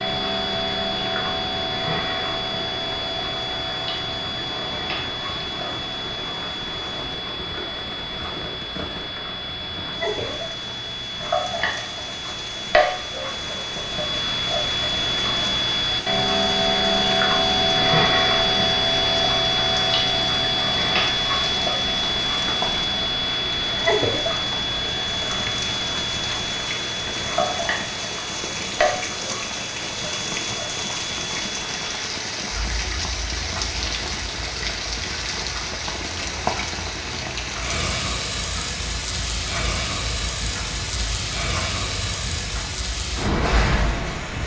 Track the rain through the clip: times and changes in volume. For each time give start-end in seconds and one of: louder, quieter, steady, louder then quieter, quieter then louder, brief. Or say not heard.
0.0-44.4 louder.